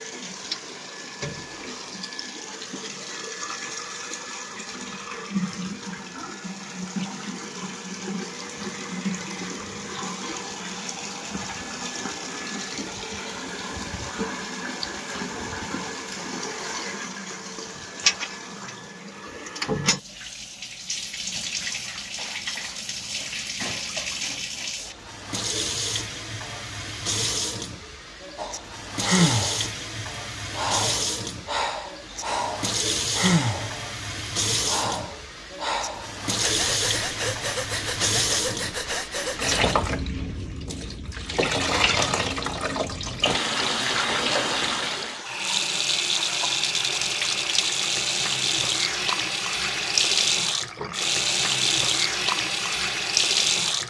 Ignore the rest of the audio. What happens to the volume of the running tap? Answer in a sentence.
The loudness of the running tap goes up.